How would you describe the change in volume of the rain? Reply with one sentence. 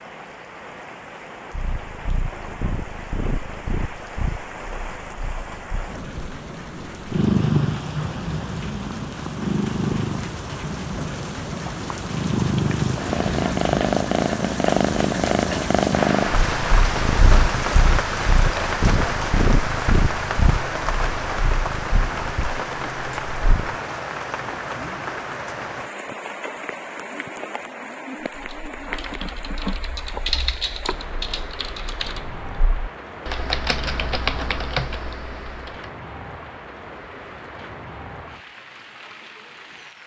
The loudness of the rain goes up, then down.